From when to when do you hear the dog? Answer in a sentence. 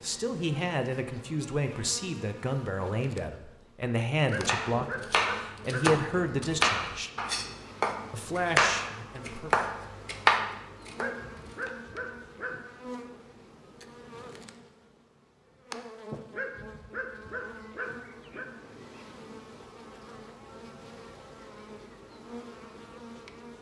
You can hear the dog from 4.2 to 6.0 s, from 10.9 to 12.6 s and from 16.3 to 18.4 s.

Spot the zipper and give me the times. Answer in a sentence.
The zipper can't be heard in this clip.